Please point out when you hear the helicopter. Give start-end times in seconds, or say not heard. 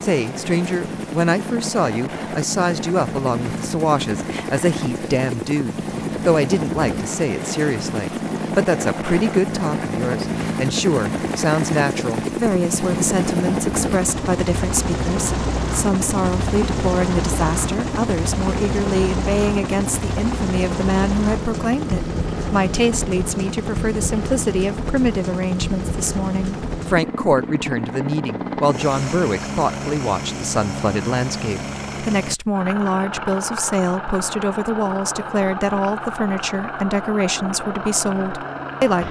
0.0-39.0.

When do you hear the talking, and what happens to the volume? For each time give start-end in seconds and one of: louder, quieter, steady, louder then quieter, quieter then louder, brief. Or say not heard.
0.0-39.0 steady.